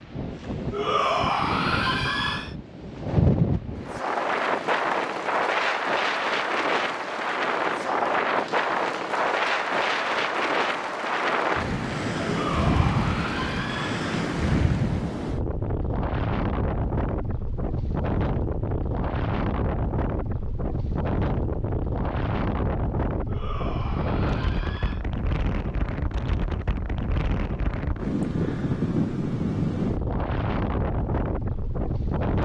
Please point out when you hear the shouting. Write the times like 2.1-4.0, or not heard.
0.7-2.5, 12.2-14.1, 23.2-25.1.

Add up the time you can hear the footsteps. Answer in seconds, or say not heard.
not heard.